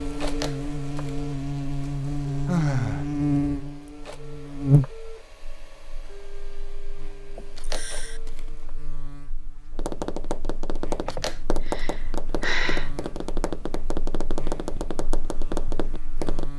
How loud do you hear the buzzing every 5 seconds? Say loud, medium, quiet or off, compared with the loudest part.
loud, quiet, quiet, quiet.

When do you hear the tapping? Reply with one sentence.
You can hear the tapping from 9.7 to 16.5 s.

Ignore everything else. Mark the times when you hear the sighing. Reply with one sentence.
The sighing can be heard from 2.5 to 3.0 s, from 7.3 to 8.2 s and from 11.1 to 12.9 s.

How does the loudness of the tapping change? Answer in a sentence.
The loudness of the tapping stays about the same.